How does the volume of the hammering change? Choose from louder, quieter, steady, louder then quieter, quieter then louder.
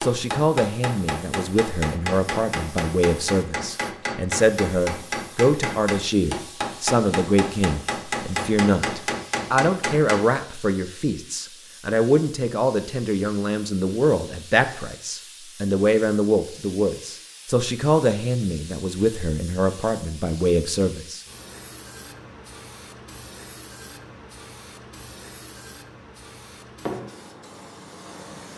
steady.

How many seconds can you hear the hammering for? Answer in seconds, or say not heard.
10 s.